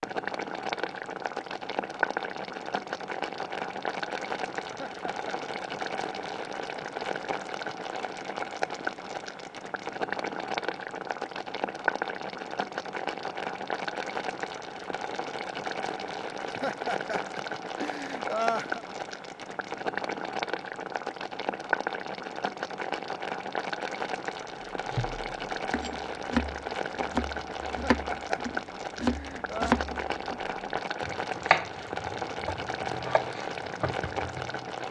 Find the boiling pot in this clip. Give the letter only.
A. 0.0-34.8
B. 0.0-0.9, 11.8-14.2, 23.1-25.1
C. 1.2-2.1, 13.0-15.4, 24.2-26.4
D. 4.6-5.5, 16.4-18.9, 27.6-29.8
A.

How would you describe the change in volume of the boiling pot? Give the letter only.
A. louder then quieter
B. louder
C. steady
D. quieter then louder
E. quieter
C.